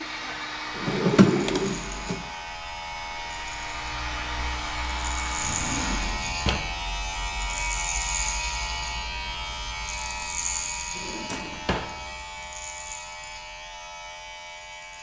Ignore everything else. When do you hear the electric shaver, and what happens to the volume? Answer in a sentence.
The electric shaver can be heard from 0.0 to 14.9 s, getting louder then quieter.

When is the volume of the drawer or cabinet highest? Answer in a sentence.
The volume of the drawer or cabinet peaks at 1 second.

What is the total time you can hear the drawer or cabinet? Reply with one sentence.
You can hear the drawer or cabinet for 4 seconds altogether.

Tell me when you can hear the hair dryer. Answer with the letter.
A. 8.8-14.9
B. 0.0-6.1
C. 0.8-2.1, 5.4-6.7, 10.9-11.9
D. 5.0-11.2
B.